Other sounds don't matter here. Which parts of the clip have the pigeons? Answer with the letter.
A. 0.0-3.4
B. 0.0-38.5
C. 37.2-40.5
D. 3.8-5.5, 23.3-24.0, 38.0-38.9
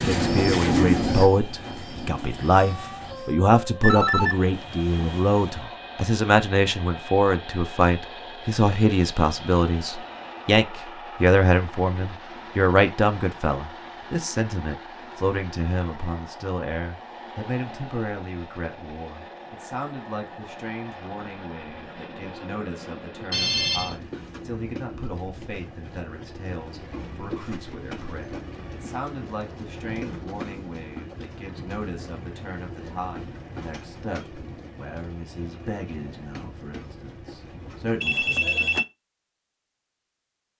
A.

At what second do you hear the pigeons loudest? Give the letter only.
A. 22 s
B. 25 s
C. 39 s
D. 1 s
D.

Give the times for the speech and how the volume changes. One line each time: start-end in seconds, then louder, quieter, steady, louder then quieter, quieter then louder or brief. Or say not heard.
0.0-38.5 quieter.